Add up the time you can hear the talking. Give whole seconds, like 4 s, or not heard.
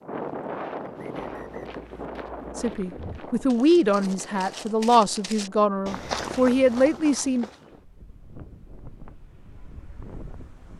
5 s.